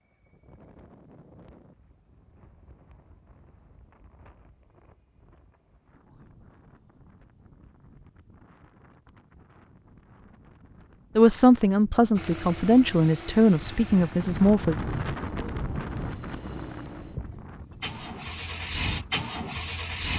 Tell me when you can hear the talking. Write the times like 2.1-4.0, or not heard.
11.2-14.8.